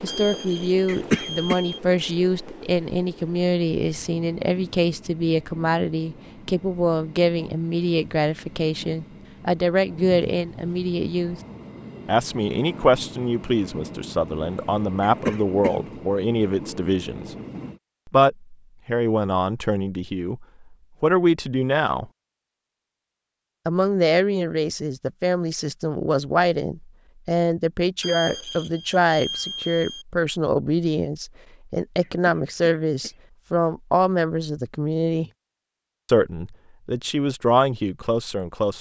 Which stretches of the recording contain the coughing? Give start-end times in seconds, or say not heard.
0.8-1.6, 15.0-15.8, 32.0-33.2.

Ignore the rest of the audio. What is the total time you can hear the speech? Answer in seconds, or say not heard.
35 s.